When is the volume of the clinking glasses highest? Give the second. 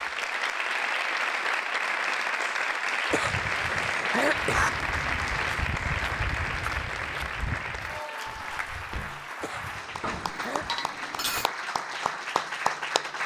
11 s.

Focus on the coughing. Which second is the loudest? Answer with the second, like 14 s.
4 s.